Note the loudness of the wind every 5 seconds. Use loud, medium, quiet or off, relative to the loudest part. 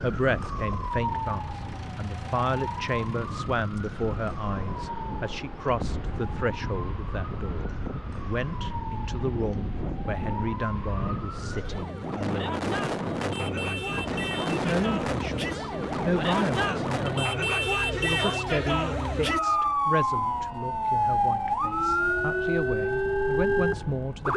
medium, medium, loud, loud, off.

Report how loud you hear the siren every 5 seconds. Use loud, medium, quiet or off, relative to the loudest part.
medium, quiet, medium, loud, loud.